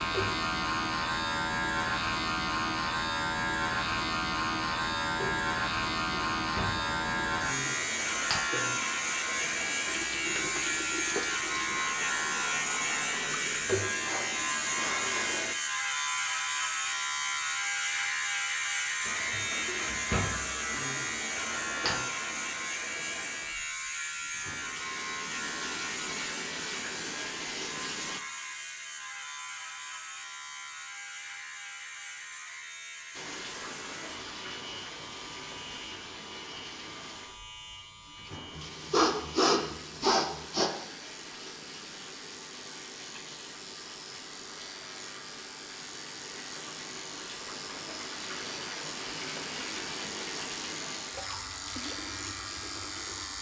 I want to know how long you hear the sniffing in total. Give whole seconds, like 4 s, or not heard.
4 s.